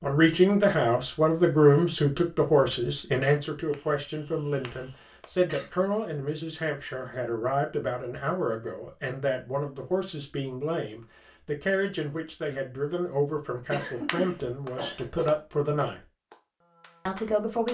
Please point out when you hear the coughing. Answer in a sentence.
You can hear the coughing from 3.7 to 5.7 s and from 13.7 to 15.3 s.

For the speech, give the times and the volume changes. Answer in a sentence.
The speech can be heard from 0.0 to 16.0 s, getting quieter; and briefly from 17.1 to 17.6 s.